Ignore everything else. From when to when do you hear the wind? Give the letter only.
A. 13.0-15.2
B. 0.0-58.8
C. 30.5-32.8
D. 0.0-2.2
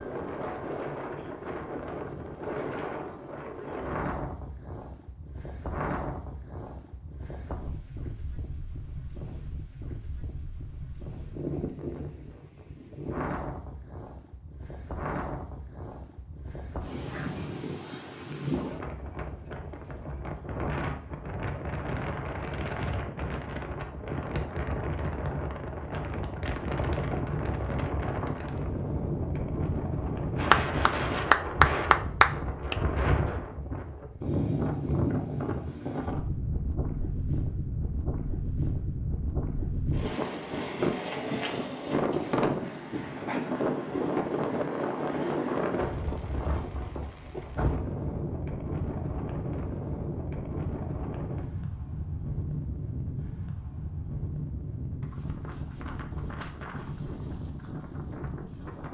B.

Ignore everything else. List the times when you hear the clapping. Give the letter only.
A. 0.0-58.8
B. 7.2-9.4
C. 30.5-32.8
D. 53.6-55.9
C.